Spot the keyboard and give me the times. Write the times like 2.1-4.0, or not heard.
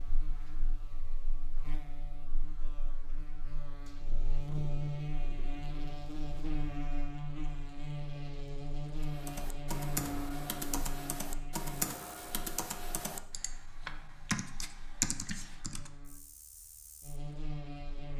9.0-15.9.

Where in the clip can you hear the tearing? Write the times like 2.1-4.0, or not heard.
not heard.